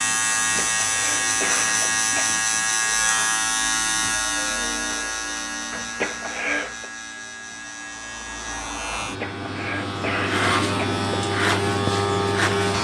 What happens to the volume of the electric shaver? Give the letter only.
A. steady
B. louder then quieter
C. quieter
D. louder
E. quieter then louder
E.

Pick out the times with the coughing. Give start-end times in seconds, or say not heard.
0.3-2.3, 5.7-6.8, 9.0-10.9.